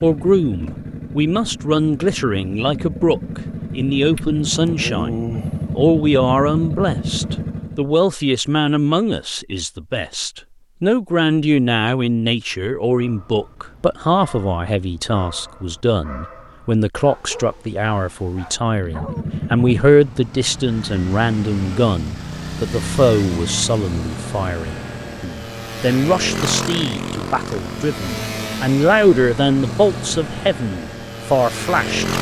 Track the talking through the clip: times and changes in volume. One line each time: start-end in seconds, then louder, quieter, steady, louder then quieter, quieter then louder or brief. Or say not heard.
0.0-32.1 steady.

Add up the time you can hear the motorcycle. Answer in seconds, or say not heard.
21 s.